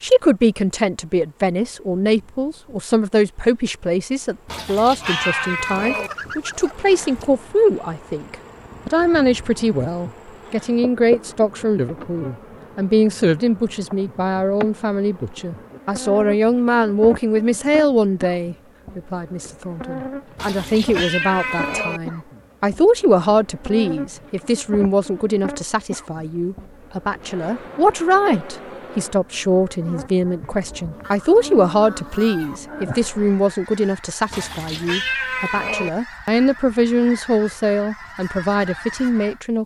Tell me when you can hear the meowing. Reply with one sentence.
You can hear the meowing from 4.5 to 6.1 s, from 20.4 to 22.0 s and from 34.3 to 35.9 s.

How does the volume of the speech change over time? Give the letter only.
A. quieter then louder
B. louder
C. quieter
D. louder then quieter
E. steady
E.